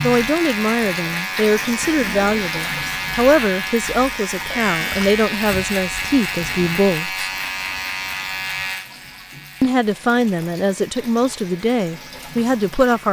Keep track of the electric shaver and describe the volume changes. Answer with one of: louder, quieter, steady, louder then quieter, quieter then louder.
quieter.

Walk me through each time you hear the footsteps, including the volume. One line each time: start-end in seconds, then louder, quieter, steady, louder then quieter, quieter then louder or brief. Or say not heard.
not heard.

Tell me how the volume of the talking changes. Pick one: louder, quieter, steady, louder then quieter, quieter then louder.
steady.